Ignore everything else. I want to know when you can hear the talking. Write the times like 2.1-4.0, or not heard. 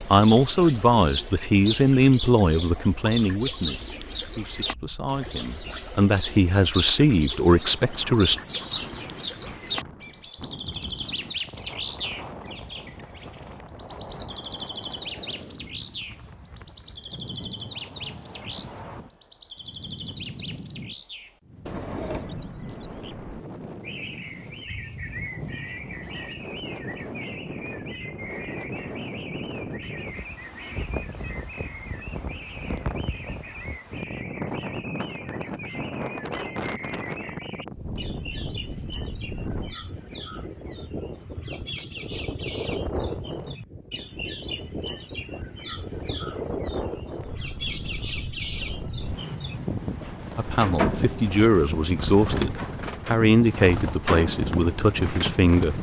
0.1-8.3, 50.4-55.7.